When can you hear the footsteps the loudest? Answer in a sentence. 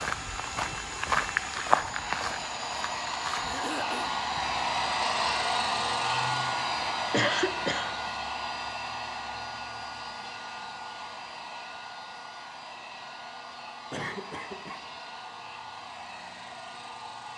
The loudest moment of the footsteps is at 2 seconds.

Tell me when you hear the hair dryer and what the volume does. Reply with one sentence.
The hair dryer can be heard from 0.0 to 17.3 s, getting louder then quieter.